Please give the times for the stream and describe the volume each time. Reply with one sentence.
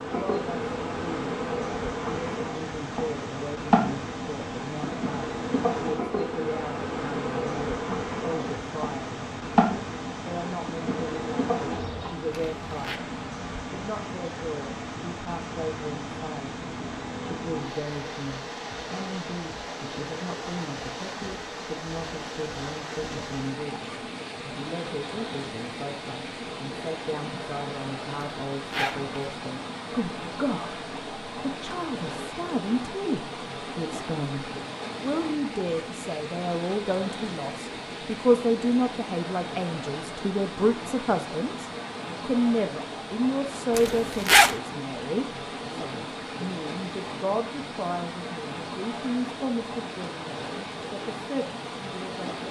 The stream can be heard from 0.0 to 52.4 s, at a steady volume.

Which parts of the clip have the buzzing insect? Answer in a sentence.
The buzzing insect can be heard from 0.0 to 12.3 s.